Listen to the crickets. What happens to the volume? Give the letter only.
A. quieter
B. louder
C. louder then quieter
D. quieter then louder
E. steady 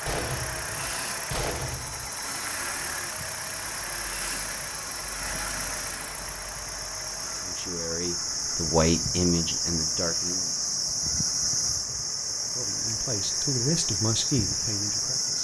B.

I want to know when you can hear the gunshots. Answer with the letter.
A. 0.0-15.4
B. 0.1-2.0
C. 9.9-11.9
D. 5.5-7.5
B.